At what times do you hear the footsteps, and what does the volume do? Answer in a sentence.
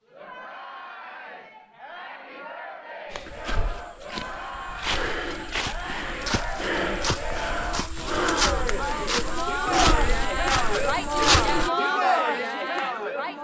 The footsteps can be heard from 3.1 to 11.7 s, getting louder.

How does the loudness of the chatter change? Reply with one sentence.
The volume of the chatter goes up.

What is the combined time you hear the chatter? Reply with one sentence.
You can hear the chatter for 13 seconds altogether.